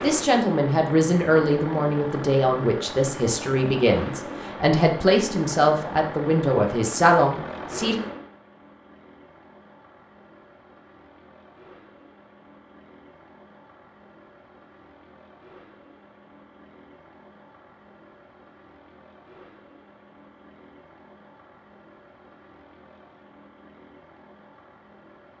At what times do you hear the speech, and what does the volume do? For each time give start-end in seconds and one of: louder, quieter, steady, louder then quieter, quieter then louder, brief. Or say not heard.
0.0-8.0 steady.